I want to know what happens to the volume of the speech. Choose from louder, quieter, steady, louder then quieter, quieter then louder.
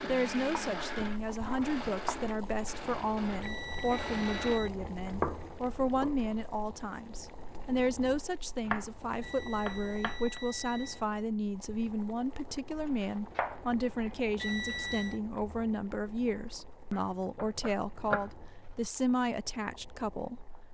steady.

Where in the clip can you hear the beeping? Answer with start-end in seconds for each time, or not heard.
3.4-4.7, 9.2-11.1, 14.3-15.2.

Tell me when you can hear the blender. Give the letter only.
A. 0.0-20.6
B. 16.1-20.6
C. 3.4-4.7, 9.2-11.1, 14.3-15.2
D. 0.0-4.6
D.